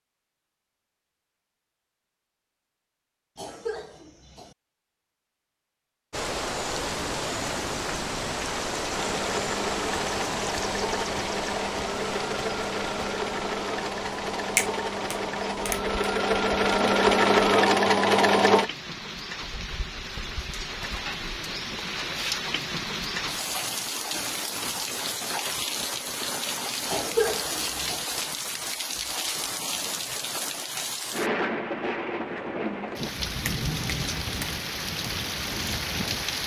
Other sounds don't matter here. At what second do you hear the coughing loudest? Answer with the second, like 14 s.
27 s.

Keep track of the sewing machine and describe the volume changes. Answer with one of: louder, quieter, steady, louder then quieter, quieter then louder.
louder.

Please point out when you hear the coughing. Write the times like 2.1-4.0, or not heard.
3.4-4.5, 26.9-28.1.